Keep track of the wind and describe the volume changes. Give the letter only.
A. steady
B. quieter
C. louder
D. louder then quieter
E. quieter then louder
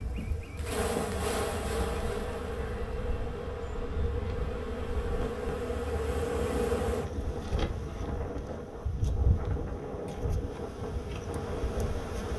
C.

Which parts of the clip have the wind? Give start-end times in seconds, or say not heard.
0.2-12.3.